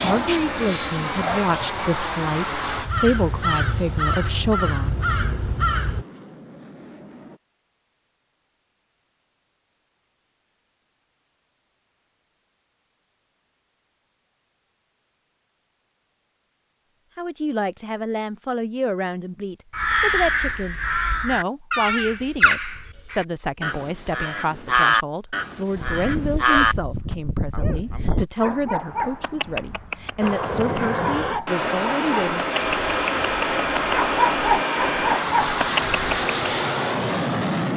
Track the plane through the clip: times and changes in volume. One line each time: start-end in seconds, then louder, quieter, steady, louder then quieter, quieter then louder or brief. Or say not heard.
0.0-7.4 quieter
30.2-37.7 steady.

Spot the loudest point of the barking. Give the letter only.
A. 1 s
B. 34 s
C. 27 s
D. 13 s
B.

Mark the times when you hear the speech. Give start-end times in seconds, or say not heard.
0.0-5.0, 17.1-32.5.